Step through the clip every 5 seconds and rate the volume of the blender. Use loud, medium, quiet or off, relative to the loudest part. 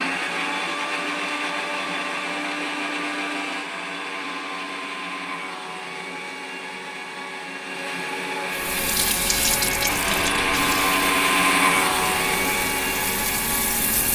medium, medium, loud.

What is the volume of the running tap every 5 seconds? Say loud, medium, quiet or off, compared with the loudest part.
off, loud, medium.